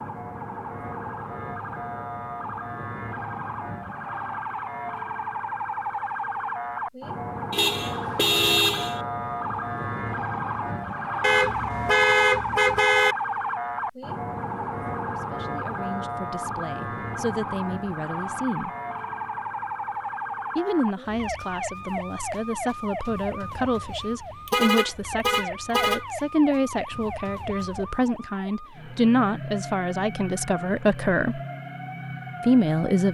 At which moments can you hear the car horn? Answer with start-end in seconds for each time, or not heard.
7.5-9.0, 11.2-13.2, 24.0-26.1.